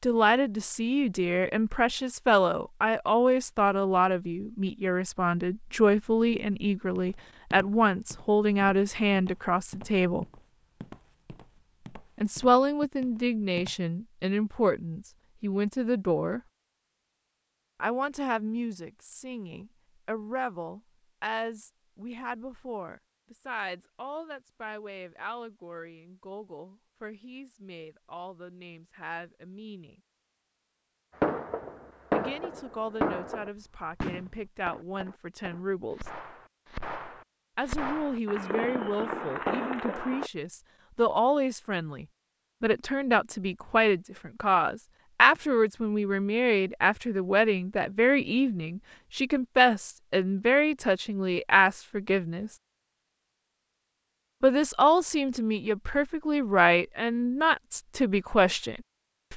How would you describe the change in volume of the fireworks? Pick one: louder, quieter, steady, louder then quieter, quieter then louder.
quieter then louder.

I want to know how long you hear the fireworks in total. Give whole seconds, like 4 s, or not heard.
9 s.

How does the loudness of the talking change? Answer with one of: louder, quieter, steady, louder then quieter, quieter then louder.
quieter then louder.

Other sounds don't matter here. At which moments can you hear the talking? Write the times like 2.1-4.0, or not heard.
0.0-10.2, 12.2-16.4, 17.8-30.0, 32.1-36.1, 37.5-52.5, 54.4-59.3.